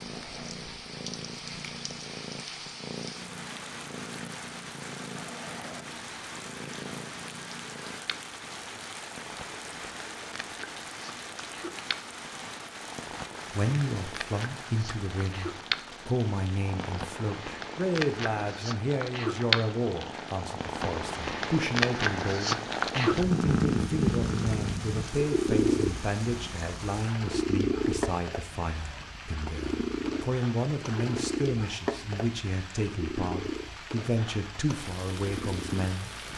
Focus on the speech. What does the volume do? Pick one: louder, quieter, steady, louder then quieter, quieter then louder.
steady.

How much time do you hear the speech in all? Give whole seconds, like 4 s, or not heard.
23 s.